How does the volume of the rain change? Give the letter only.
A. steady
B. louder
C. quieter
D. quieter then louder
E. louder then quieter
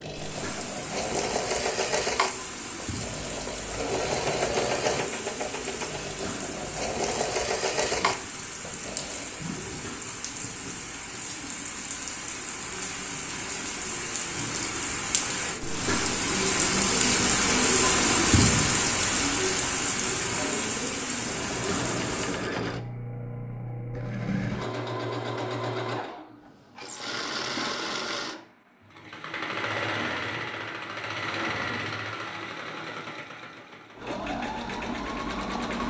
B.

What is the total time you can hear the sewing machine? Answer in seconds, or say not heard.
24 s.